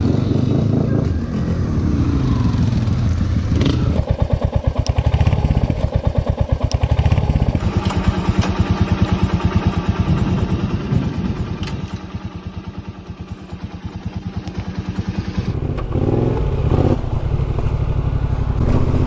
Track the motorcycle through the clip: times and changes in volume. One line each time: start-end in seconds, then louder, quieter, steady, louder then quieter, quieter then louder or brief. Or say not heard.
0.0-19.0 quieter then louder.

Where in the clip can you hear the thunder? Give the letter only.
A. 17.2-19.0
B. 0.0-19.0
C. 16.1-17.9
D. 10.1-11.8
D.